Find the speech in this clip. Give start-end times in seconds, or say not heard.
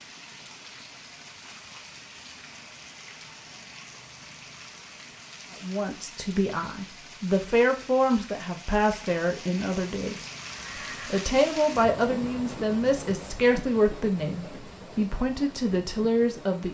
5.5-10.3, 11.1-16.6.